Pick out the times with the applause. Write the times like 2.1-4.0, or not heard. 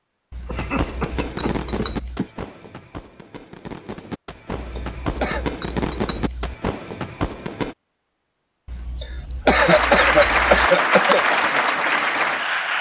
9.5-12.7.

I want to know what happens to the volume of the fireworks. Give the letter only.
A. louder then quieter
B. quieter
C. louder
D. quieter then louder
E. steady
D.